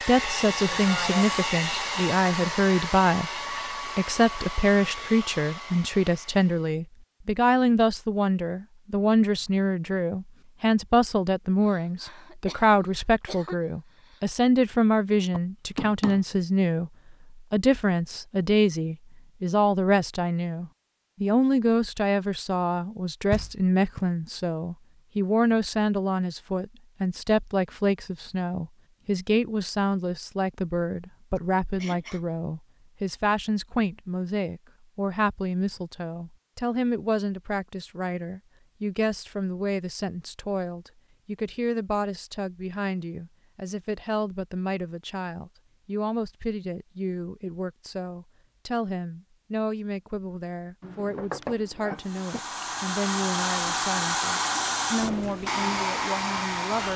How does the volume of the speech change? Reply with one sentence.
The loudness of the speech goes down.